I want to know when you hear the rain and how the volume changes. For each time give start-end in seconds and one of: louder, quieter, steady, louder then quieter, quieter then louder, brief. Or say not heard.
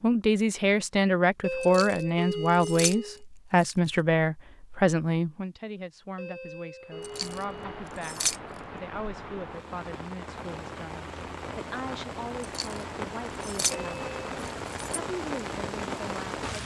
6.8-16.6 louder.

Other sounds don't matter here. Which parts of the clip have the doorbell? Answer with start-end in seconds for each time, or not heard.
1.4-3.2, 6.2-7.8, 13.7-14.2.